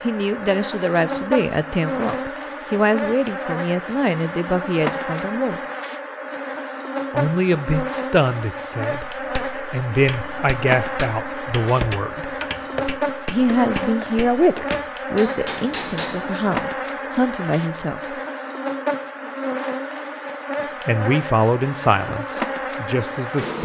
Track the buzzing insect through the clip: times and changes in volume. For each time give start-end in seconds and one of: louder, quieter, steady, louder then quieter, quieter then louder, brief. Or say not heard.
0.0-23.6 steady.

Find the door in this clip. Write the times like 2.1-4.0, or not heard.
not heard.